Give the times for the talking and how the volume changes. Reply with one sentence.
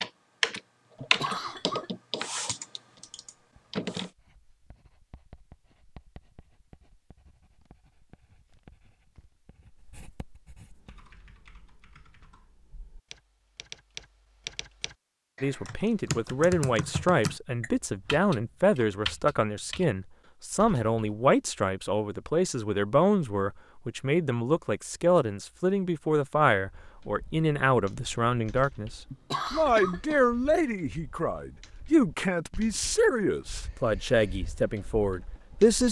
You can hear the talking from 15.4 to 35.8 s, at a steady volume.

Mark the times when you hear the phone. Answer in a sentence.
You can't hear the phone here.